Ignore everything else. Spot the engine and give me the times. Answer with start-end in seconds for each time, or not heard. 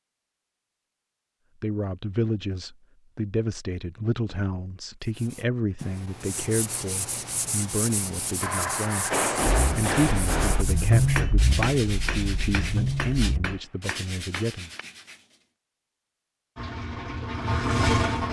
8.4-13.6, 16.6-18.2.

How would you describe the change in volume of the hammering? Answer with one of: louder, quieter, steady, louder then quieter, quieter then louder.
quieter.